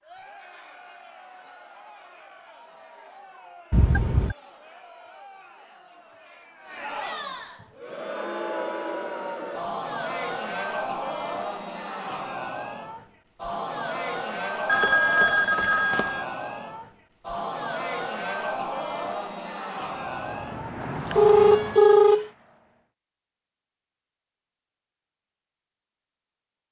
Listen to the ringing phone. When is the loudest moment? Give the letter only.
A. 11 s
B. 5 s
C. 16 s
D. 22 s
D.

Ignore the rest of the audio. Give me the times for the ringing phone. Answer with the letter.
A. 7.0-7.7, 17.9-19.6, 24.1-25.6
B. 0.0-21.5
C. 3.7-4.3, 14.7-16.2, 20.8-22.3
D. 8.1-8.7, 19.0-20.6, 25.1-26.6
C.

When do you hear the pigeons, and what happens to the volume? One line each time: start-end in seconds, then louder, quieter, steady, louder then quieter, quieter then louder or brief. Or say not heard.
not heard.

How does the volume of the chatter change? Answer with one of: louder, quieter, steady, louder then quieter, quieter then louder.
louder.